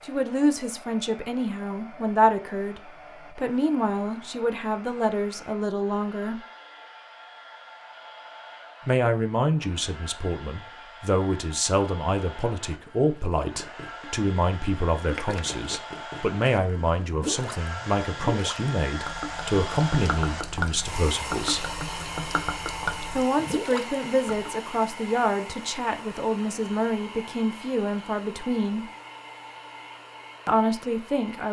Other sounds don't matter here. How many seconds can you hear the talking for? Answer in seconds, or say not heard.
26 s.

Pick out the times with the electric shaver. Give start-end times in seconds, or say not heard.
not heard.